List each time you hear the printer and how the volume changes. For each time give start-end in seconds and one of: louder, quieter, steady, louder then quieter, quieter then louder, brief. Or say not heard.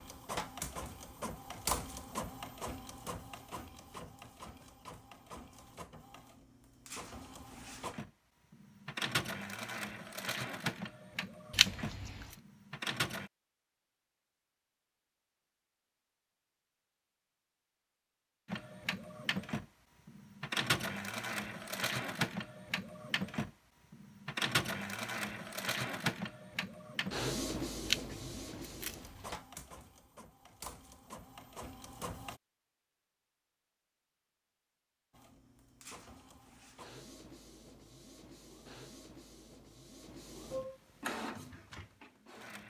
0.0-13.3 quieter then louder
18.4-32.4 quieter
35.1-42.6 louder.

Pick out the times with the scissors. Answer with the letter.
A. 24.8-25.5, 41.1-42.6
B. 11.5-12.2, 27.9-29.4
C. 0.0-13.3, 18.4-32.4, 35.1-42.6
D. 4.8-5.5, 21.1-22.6
B.